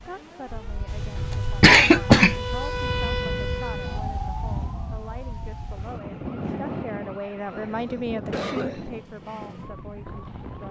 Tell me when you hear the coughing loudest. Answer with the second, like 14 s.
2 s.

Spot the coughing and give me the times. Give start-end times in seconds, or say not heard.
1.1-2.4, 7.5-8.8.